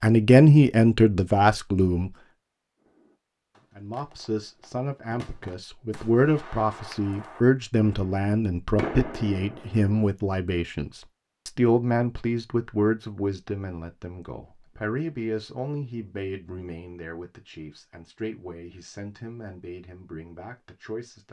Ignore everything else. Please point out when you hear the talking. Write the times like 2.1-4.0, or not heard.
0.0-2.1, 3.8-21.2.